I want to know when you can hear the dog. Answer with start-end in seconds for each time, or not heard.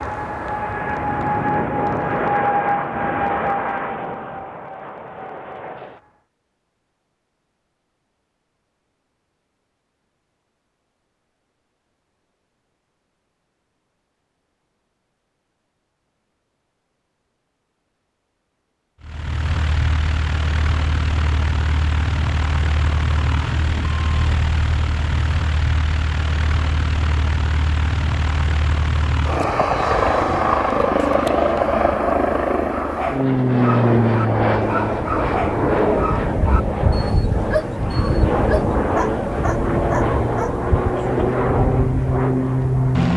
32.6-40.5.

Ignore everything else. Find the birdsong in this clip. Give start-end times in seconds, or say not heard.
not heard.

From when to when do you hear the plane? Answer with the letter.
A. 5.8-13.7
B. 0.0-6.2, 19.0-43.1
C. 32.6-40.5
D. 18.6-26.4
B.